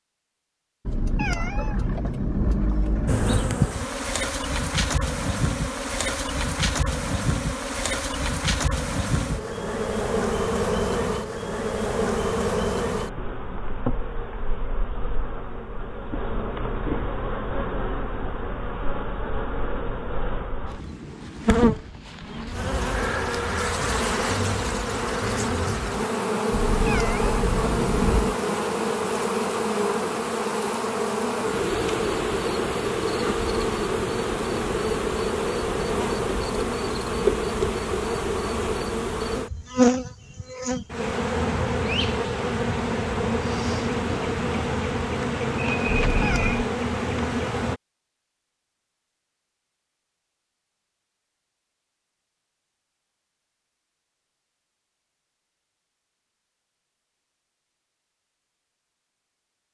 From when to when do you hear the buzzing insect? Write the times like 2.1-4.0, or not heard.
3.0-47.8.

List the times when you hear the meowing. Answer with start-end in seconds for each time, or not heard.
0.8-3.5, 26.5-28.4, 45.9-46.7.